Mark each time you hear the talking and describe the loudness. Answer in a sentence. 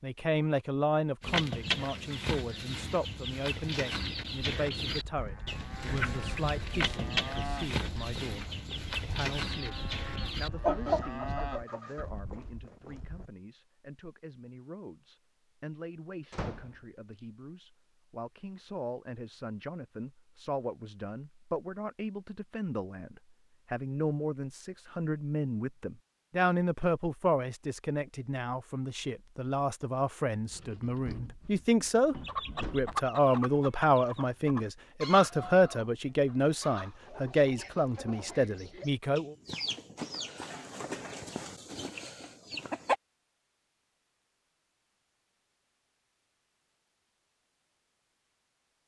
The talking can be heard from 0.0 to 39.4 s, getting quieter then louder.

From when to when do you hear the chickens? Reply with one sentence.
You can hear the chickens from 1.2 to 12.1 s and from 32.2 to 43.0 s.